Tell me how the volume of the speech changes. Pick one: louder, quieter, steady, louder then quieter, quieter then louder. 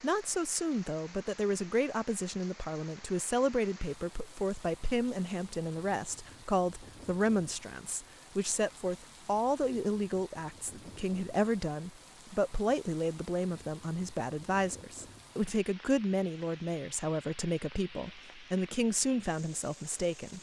steady.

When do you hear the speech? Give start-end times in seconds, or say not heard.
0.0-20.3.